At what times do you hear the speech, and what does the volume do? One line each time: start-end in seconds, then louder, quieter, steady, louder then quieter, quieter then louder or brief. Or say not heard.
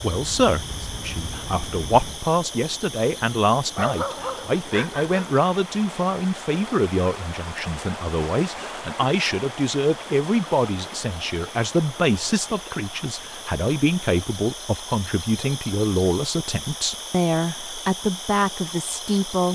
0.0-19.4 steady.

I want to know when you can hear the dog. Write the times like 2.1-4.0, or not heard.
3.8-5.3.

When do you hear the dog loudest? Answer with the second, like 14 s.
4 s.